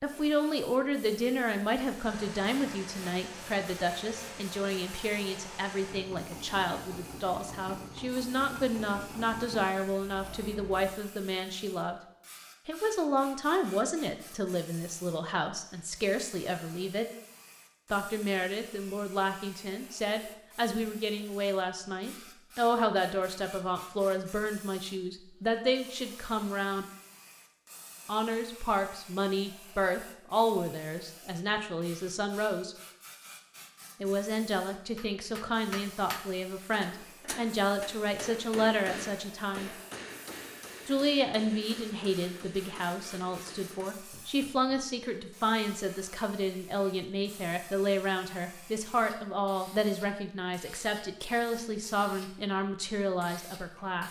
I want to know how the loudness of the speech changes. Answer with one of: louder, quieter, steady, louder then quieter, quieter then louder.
steady.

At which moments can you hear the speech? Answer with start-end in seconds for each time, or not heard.
0.0-12.0, 12.7-17.1, 17.9-26.9, 28.1-32.8, 34.0-39.7, 40.9-54.0.